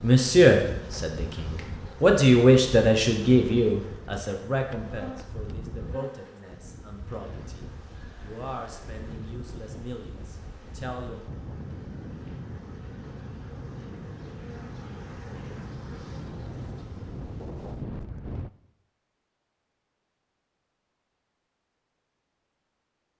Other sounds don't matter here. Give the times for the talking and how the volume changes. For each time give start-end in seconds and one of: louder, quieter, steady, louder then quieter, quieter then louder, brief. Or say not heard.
0.0-11.2 quieter.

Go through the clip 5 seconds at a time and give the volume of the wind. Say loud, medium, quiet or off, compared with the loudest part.
medium, medium, loud, loud, off.